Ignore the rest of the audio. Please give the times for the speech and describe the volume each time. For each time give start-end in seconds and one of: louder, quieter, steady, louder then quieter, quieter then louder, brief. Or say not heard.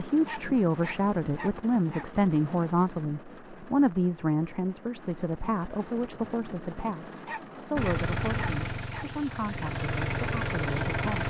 0.0-11.2 quieter.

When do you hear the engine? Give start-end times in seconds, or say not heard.
7.8-11.2.